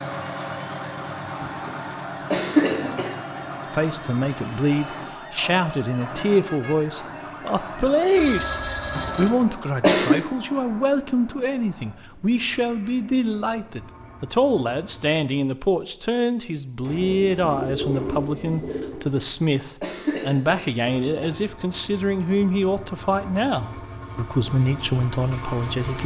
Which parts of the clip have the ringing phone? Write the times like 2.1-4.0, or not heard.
8.2-9.3.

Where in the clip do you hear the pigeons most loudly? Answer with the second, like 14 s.
18 s.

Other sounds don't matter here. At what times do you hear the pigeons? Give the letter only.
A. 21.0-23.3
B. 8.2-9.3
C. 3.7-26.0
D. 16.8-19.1
D.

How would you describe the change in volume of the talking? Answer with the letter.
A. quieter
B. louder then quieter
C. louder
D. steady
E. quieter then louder
D.